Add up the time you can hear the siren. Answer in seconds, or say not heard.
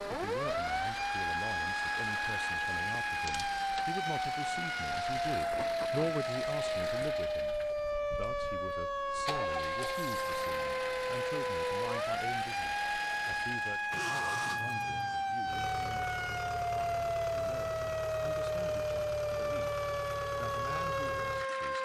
22 s.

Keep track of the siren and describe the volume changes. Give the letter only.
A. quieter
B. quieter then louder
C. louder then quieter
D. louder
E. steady
E.